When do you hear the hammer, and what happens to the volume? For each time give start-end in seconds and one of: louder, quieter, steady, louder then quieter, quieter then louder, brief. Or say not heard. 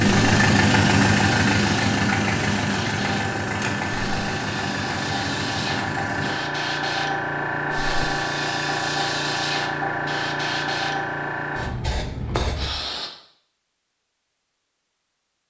not heard.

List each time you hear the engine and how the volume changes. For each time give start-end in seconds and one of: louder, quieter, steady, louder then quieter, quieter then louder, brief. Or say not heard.
0.0-6.4 quieter.